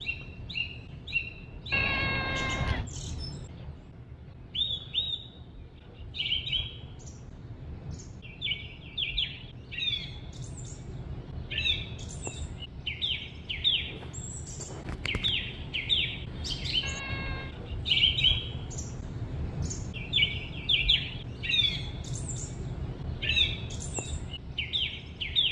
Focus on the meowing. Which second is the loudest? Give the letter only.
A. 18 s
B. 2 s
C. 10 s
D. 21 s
B.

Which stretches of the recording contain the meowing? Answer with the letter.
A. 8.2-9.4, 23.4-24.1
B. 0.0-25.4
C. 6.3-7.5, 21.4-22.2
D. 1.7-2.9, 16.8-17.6
D.